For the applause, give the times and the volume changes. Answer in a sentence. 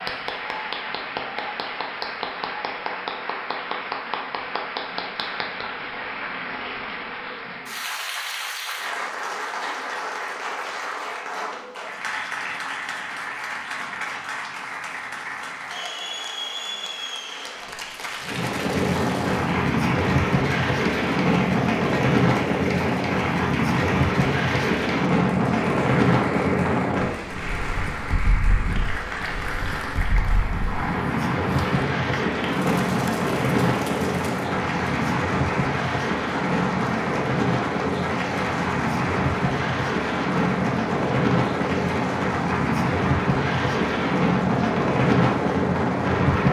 You can hear the applause from 0.0 to 46.4 s, at a steady volume.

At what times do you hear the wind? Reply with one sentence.
You can hear the wind from 18.2 to 46.4 s.